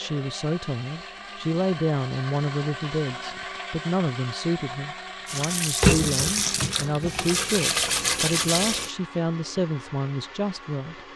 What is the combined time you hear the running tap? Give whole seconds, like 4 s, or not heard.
4 s.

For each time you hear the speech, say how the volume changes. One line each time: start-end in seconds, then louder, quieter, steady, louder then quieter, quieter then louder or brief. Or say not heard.
0.0-11.0 steady.